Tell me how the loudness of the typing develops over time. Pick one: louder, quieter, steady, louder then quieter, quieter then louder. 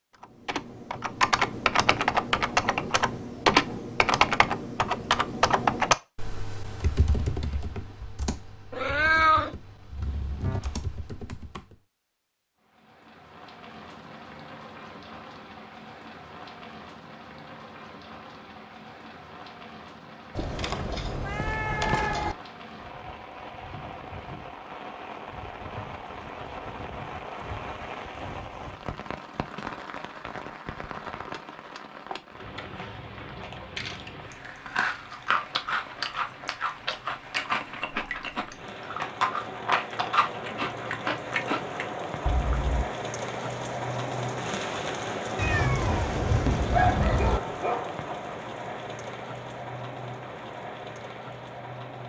quieter.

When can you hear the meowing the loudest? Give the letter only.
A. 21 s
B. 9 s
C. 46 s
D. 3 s
B.